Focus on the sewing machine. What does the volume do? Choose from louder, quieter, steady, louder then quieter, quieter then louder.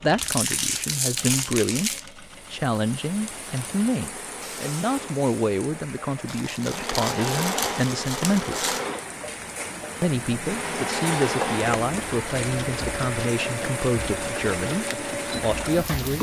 louder.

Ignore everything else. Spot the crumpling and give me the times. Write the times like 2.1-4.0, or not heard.
0.1-2.1, 6.2-8.9, 11.1-11.9.